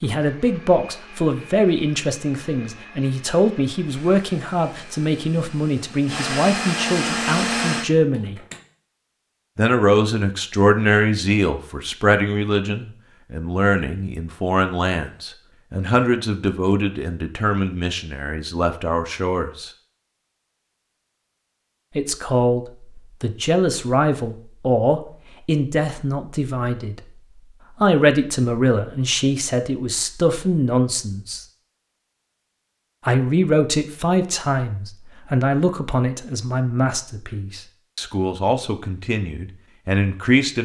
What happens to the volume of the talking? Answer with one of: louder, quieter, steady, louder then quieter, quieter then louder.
steady.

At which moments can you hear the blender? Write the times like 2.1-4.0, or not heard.
0.0-8.6.